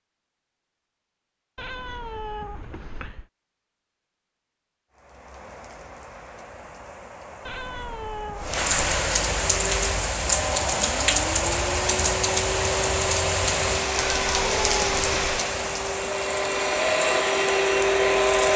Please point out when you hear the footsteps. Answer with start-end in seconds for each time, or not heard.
not heard.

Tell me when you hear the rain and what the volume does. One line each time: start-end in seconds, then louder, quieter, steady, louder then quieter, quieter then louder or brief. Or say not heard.
4.9-18.5 louder then quieter.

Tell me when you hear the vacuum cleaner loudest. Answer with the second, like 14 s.
18 s.